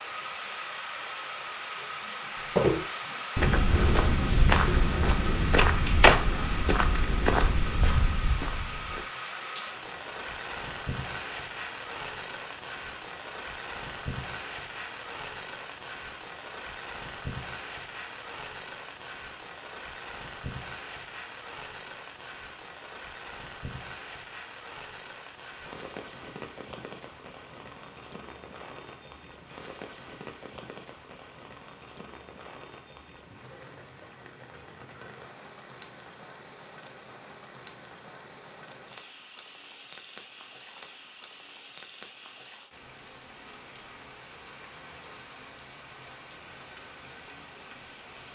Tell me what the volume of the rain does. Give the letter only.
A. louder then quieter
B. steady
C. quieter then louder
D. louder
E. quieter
E.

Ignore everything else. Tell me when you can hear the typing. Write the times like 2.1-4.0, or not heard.
not heard.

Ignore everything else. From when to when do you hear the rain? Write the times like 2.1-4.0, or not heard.
0.0-48.3.